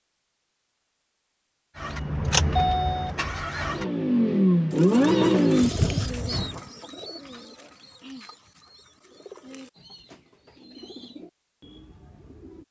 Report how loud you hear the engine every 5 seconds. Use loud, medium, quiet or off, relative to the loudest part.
loud, loud, off.